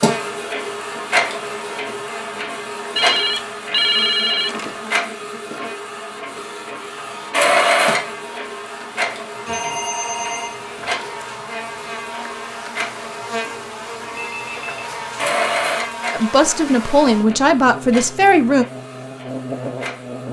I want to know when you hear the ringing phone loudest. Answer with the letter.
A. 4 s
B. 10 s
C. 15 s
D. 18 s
A.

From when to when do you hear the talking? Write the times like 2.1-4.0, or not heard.
16.1-18.6.